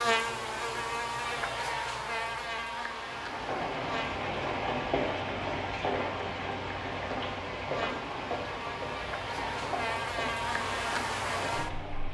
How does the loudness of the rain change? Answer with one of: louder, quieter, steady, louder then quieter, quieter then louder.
quieter.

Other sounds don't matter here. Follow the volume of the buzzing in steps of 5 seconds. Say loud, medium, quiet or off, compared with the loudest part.
loud, medium, loud.